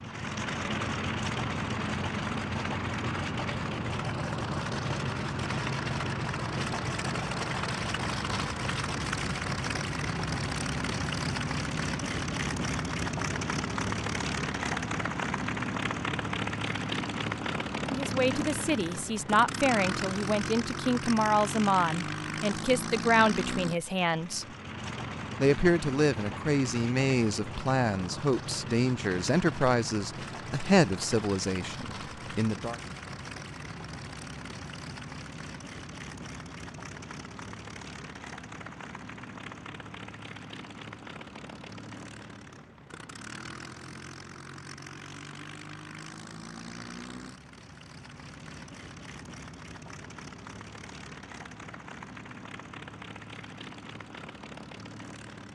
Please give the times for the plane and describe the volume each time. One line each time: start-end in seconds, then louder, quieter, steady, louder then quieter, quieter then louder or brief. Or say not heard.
0.0-55.5 quieter.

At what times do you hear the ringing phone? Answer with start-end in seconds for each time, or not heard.
not heard.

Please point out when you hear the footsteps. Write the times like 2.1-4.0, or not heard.
not heard.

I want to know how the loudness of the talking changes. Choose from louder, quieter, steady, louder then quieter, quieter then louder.
steady.